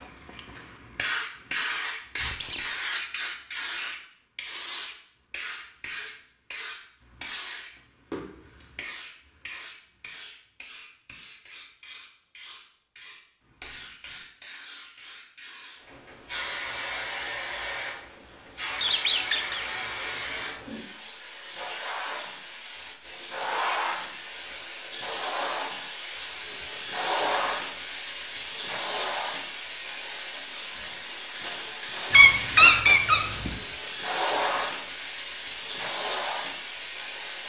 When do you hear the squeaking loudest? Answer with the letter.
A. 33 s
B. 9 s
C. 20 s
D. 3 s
A.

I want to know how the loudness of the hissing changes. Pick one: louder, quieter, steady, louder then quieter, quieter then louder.
quieter then louder.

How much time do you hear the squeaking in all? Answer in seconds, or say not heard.
3 s.